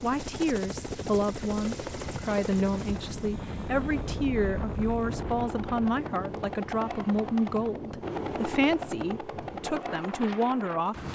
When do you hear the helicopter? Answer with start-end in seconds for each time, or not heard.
0.0-11.0.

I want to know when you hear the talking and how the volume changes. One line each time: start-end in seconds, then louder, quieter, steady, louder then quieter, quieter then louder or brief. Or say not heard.
0.0-11.0 steady.